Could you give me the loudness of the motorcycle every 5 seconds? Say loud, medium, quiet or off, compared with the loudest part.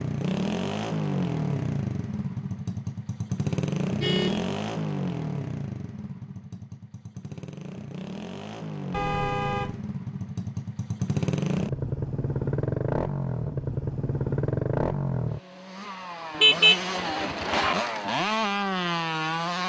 loud, medium, loud, loud.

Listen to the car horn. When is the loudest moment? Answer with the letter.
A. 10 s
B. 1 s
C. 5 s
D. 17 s
D.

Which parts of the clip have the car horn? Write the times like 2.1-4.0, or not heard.
4.0-4.5, 8.9-9.8, 16.4-17.8.